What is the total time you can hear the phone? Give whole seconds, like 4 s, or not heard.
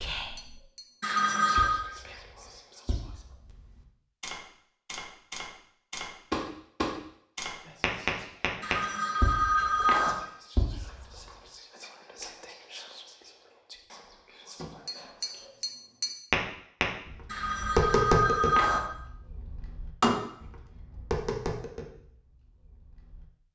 4 s.